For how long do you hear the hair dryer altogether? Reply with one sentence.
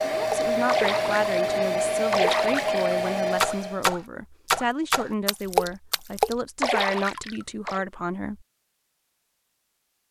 The hair dryer can be heard for 4 seconds in total.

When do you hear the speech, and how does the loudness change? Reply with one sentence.
The speech can be heard from 0.0 to 8.4 s, at a steady volume.